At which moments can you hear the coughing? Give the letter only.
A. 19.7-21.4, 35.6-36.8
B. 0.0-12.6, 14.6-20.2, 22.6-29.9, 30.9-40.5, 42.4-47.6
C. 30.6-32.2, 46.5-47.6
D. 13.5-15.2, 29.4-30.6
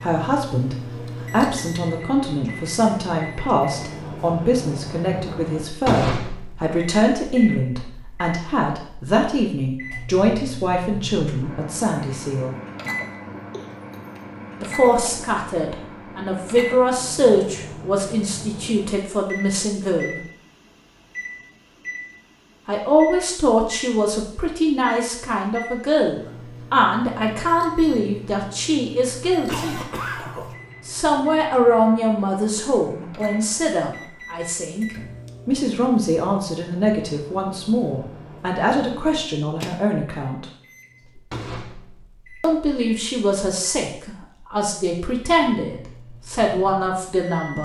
D.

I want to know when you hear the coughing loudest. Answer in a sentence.
The loudest moment of the coughing is at 30 seconds.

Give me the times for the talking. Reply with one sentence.
You can hear the talking from 0.0 to 12.6 s, from 14.6 to 20.2 s, from 22.6 to 29.9 s, from 30.9 to 40.5 s and from 42.4 to 47.6 s.